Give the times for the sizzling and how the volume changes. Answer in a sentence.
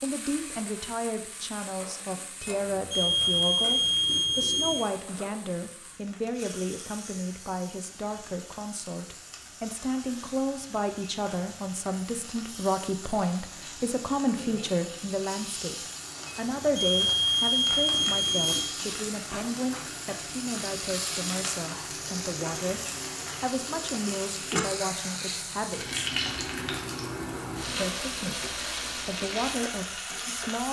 You can hear the sizzling from 0.0 to 30.6 s, getting louder.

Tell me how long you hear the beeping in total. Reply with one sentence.
You can hear the beeping for 5 seconds altogether.